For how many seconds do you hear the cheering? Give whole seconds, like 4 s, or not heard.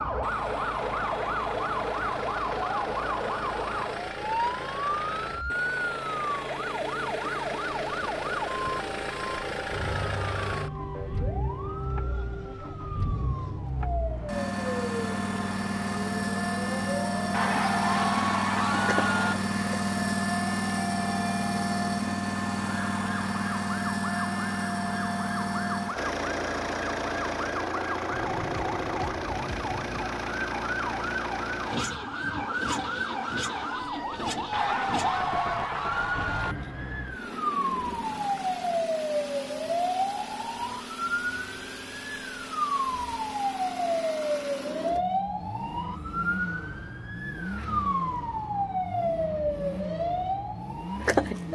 4 s.